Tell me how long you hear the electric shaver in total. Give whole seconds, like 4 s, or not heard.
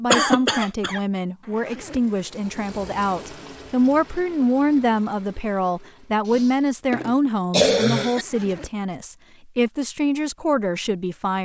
not heard.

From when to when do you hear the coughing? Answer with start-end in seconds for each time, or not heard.
0.1-1.0, 6.3-8.2.